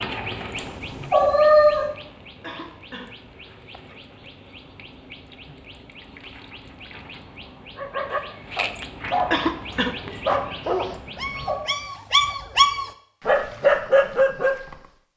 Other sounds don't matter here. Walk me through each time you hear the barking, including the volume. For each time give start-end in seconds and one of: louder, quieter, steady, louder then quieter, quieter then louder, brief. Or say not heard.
7.8-14.8 louder.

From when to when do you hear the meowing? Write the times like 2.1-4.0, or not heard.
0.6-1.9, 10.9-11.6.